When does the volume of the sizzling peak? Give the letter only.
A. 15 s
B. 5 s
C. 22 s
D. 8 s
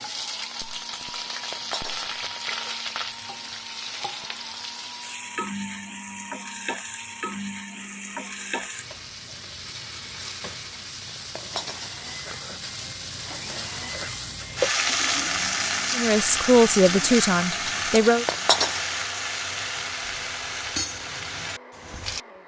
A.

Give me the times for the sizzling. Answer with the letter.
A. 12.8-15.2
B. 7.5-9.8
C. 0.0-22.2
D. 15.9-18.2
C.